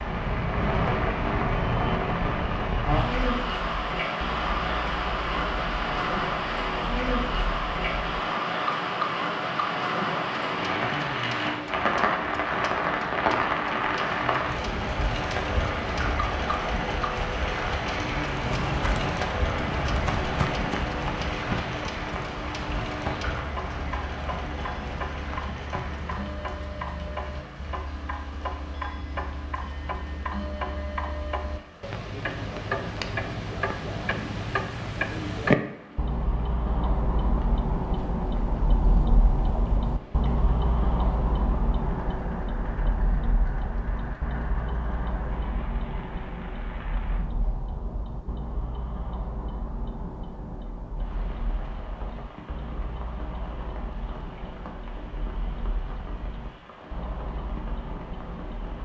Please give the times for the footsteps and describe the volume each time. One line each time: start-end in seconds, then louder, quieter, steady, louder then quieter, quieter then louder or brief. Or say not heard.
18.4-26.3 quieter.